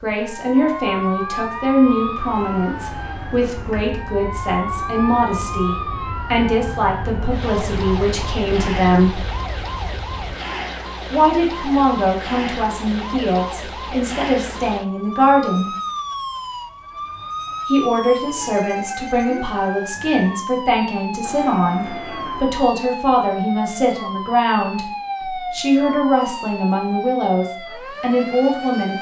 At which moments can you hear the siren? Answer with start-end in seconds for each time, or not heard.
0.0-28.9.